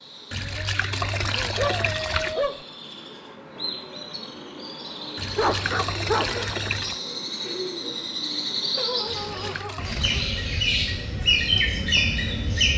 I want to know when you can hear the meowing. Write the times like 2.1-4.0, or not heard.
not heard.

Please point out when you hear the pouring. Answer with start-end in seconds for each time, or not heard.
0.3-2.4, 5.2-7.0, 9.1-10.2.